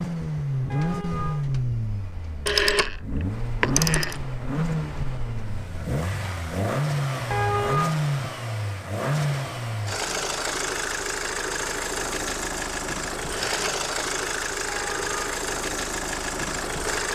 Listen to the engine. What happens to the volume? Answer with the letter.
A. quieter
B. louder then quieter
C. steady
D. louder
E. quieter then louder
C.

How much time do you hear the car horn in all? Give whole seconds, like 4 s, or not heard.
2 s.